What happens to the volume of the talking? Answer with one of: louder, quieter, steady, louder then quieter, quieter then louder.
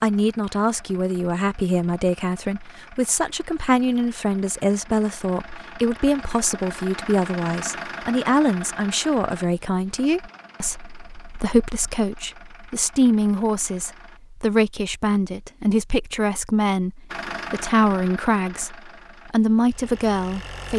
steady.